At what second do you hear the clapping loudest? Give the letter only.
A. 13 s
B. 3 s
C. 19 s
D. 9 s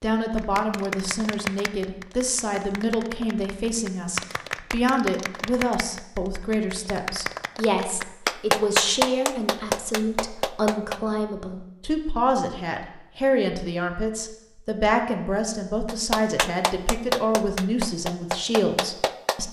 D.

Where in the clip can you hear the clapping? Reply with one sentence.
The clapping can be heard from 0.3 to 11.0 s and from 15.8 to 19.4 s.